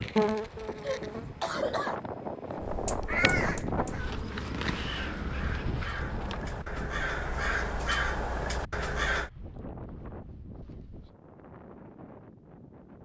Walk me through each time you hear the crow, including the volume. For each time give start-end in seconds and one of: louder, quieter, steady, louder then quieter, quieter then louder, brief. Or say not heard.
2.5-9.3 quieter then louder.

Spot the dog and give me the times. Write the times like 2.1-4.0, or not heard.
not heard.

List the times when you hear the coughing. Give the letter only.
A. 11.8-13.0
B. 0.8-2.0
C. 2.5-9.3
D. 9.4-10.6
B.